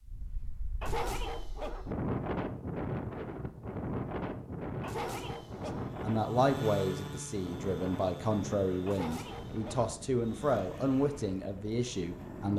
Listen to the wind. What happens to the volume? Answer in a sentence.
The volume of the wind goes down.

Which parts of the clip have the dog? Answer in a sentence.
The dog can be heard from 0.8 to 1.9 s, from 4.8 to 5.8 s and from 8.8 to 9.9 s.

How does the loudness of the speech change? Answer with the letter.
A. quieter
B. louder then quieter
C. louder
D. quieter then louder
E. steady
E.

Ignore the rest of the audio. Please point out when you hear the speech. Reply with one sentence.
The speech can be heard from 5.7 to 12.5 s.